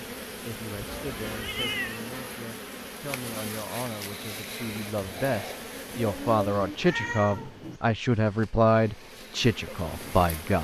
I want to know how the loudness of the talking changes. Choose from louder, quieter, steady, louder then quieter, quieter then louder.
louder.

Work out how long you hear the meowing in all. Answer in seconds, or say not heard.
3 s.